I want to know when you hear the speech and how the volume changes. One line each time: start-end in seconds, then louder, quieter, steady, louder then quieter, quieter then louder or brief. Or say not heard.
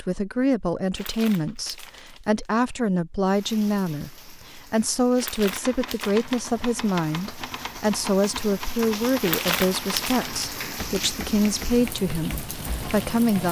0.0-13.4 steady.